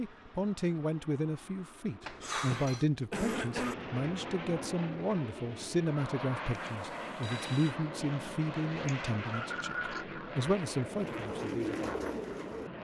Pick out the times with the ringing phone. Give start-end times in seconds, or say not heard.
2.0-2.9, 6.5-7.8.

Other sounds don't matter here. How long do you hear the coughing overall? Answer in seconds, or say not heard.
3 s.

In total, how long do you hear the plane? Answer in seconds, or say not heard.
13 s.